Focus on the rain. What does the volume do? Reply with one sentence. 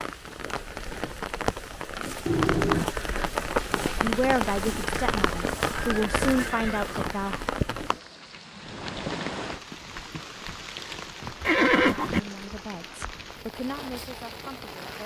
The volume of the rain goes down.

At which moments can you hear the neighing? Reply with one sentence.
You can hear the neighing from 2.2 to 2.9 s, from 5.8 to 7.0 s and from 11.4 to 12.2 s.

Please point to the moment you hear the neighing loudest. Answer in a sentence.
The volume of the neighing peaks at 12 seconds.